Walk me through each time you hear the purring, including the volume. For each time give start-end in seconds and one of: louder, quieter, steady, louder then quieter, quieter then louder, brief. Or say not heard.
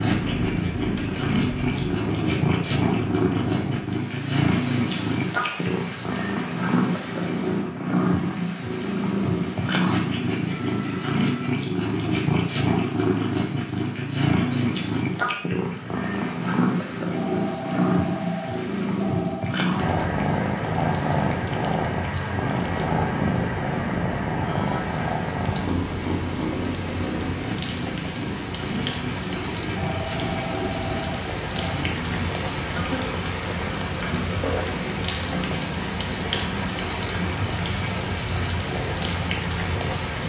0.0-40.0 quieter.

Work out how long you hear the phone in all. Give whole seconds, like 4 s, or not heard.
6 s.